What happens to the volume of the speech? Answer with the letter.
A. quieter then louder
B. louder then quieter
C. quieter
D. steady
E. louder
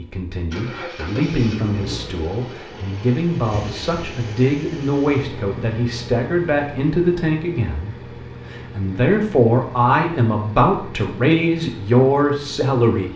E.